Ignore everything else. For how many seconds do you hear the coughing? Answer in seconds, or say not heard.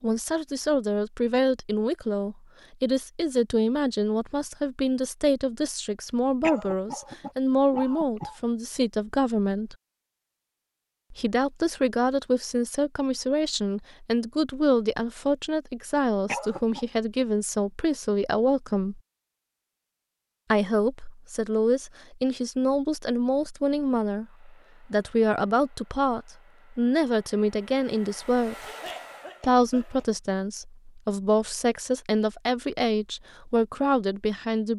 4 s.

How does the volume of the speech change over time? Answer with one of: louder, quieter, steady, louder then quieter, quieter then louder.
steady.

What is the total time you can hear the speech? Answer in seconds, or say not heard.
31 s.